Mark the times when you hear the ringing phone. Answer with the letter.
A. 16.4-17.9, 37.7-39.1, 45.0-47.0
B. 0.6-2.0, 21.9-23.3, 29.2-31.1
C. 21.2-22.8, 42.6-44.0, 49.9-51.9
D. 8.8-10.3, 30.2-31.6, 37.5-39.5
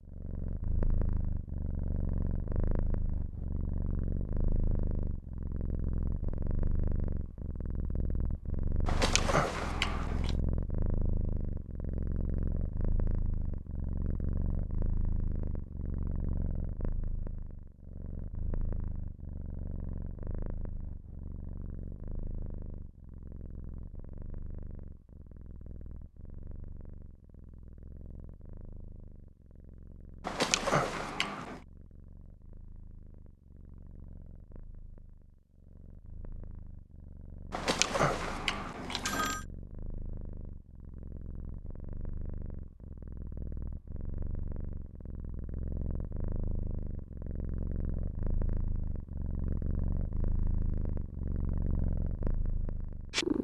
D.